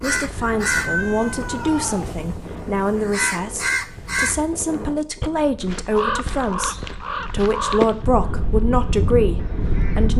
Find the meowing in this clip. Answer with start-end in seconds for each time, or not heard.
0.5-2.1.